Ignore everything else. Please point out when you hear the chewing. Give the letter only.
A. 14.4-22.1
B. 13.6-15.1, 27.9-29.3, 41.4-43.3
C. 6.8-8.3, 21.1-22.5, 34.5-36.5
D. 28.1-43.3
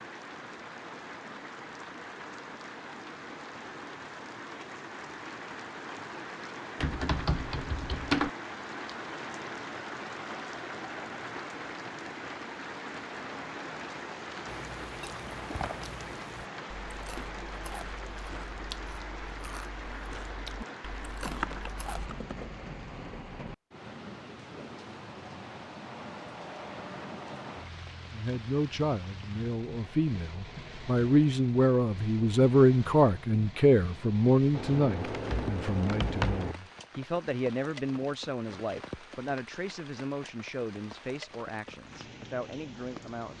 A.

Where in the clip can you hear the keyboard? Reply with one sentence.
The keyboard can be heard from 6.8 to 8.3 s, from 21.1 to 22.5 s and from 34.5 to 36.5 s.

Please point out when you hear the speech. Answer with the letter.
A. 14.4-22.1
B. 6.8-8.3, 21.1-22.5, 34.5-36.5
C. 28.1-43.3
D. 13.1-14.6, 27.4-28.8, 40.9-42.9
C.